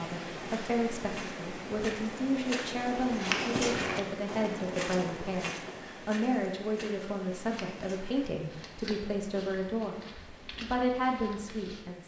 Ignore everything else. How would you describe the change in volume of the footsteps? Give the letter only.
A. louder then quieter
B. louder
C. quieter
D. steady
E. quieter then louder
C.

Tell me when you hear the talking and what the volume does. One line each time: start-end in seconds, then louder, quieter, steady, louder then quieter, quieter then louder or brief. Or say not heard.
0.0-12.0 steady.